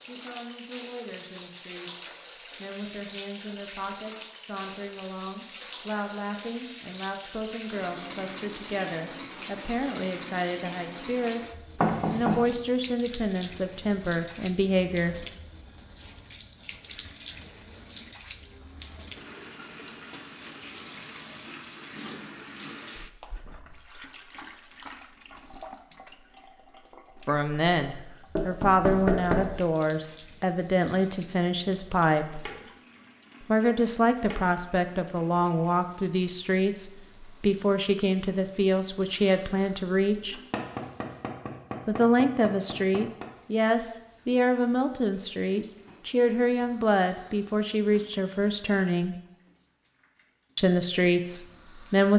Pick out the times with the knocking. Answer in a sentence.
You can hear the knocking from 11.8 to 12.4 s, from 28.4 to 29.6 s and from 40.5 to 43.2 s.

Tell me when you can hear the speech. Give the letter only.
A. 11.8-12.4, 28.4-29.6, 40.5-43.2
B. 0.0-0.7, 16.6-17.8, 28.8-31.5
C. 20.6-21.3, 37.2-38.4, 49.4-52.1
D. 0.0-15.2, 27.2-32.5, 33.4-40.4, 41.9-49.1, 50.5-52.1
D.